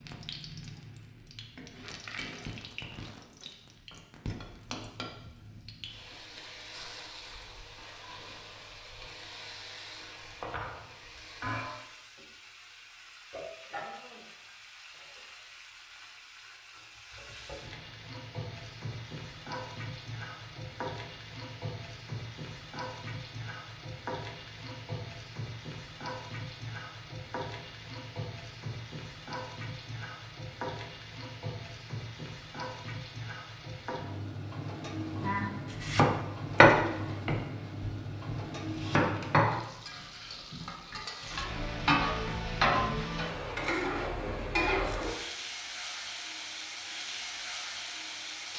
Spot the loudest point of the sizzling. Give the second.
42 s.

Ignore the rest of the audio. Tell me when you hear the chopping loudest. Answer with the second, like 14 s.
37 s.